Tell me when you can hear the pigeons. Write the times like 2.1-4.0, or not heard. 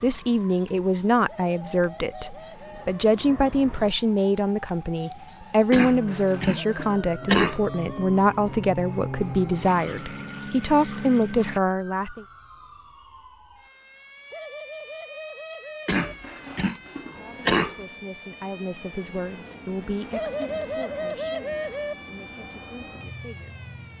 1.2-3.1, 6.5-8.1, 14.3-16.1, 20.1-21.9.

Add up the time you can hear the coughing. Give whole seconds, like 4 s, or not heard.
4 s.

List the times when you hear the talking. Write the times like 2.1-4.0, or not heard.
0.0-12.2, 17.0-23.6.